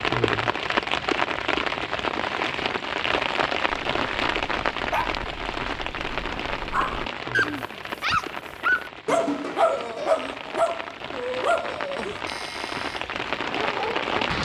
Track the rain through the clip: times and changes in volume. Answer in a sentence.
You can hear the rain from 0.0 to 14.4 s, getting quieter then louder.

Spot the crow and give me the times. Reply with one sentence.
You can't hear the crow here.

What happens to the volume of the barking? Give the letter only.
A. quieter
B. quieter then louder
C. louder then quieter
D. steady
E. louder
C.